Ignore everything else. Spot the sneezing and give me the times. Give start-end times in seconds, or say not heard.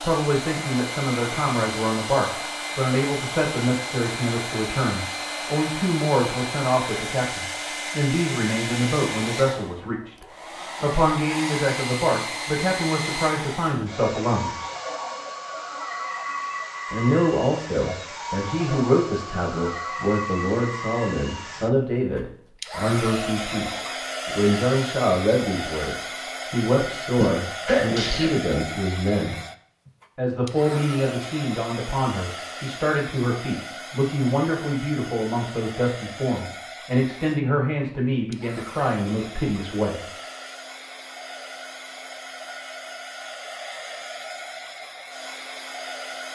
27.1-28.4.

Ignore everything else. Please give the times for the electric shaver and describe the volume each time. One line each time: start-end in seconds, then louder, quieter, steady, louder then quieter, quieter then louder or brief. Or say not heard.
not heard.